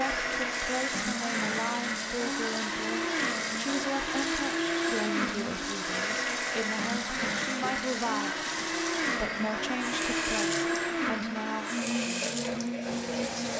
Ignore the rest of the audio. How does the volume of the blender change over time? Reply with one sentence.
The volume of the blender stays about the same.